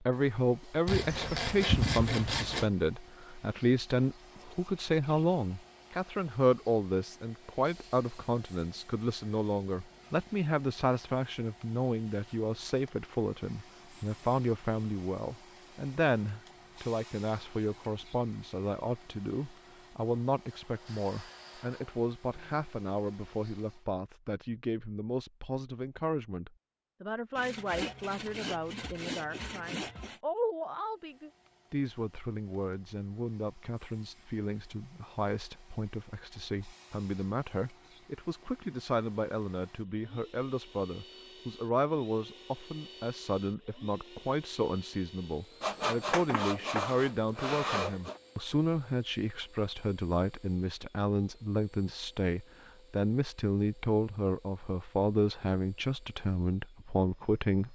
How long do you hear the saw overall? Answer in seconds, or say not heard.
7 s.